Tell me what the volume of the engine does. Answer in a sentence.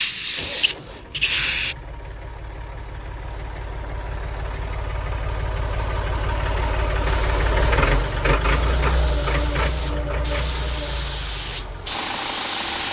The loudness of the engine goes up, then down.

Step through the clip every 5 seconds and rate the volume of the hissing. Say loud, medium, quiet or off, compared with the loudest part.
loud, quiet, medium.